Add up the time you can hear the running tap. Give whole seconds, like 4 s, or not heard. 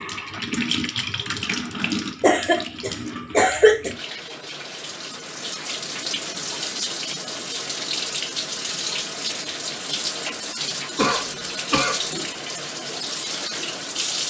14 s.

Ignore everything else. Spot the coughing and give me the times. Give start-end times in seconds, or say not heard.
2.2-3.9, 10.9-12.0.